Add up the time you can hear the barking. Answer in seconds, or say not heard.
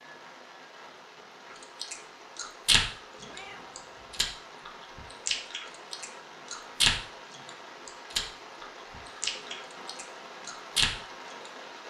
not heard.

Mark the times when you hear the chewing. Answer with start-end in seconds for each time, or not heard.
1.8-11.5.